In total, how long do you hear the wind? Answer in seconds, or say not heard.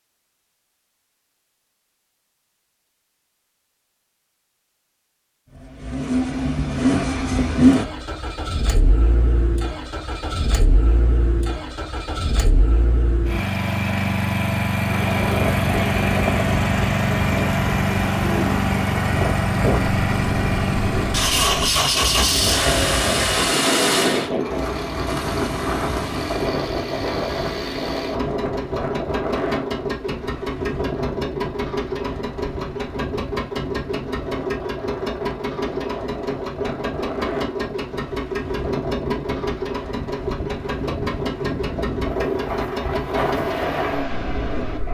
30 s.